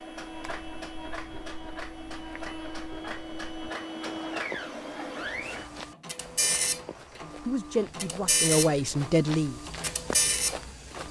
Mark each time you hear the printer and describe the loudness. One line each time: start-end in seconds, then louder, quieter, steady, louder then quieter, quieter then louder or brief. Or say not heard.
0.0-11.0 louder.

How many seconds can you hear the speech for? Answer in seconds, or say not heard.
2 s.